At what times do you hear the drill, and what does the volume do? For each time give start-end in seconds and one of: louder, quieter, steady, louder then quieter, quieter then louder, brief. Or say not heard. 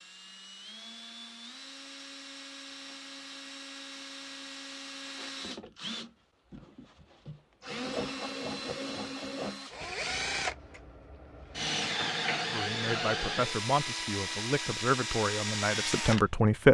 0.0-16.2 louder.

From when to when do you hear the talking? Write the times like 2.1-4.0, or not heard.
12.4-16.6.